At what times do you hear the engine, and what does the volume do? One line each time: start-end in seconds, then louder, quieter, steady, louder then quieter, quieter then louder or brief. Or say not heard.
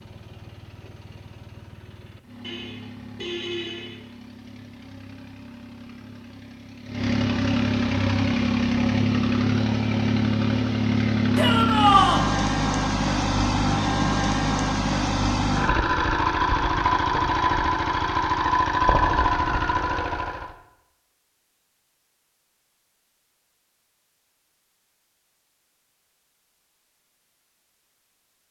0.0-20.6 louder.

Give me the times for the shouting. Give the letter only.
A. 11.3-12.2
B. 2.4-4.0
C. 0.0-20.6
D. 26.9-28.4
A.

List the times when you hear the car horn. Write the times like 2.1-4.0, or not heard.
2.4-4.0.